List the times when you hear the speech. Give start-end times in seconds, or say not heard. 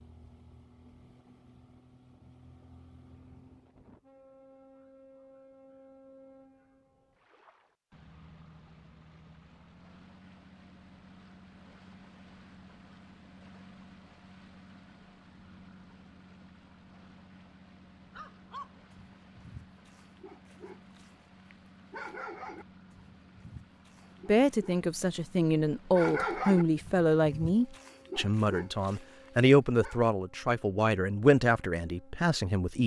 24.2-32.8.